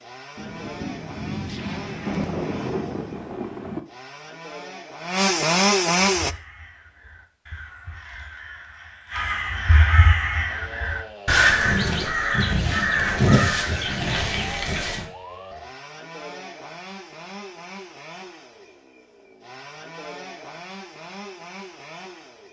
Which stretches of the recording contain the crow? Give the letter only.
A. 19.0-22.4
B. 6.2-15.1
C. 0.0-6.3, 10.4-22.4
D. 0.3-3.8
B.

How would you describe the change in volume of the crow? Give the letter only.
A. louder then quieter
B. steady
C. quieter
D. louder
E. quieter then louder
D.